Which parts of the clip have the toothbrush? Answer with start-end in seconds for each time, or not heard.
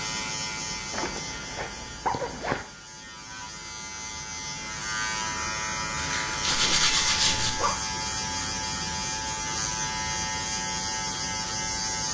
6.0-7.5.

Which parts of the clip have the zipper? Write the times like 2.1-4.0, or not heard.
0.9-2.6, 6.5-7.8.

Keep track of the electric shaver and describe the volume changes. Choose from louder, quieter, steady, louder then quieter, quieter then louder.
louder.